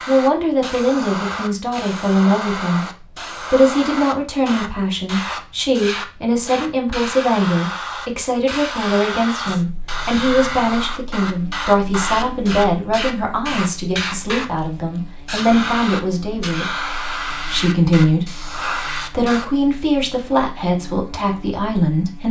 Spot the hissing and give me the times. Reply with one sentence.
You can hear the hissing from 0.0 to 19.4 s.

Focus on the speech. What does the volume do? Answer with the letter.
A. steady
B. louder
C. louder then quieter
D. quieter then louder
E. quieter
A.